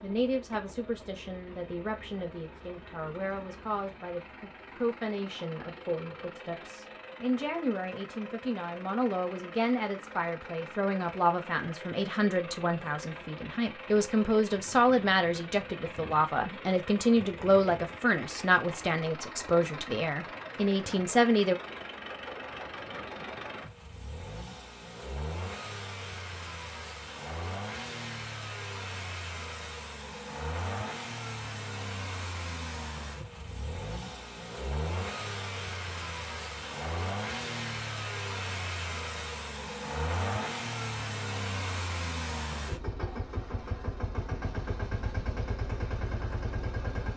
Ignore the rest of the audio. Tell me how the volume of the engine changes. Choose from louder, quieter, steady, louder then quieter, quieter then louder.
louder.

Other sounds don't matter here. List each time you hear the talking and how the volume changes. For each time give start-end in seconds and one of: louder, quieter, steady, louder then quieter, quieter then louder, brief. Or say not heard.
0.0-21.6 louder.